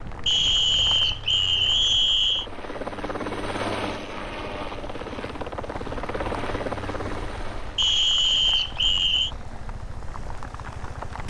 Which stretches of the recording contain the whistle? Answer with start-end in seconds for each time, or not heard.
0.2-2.5, 7.8-9.3.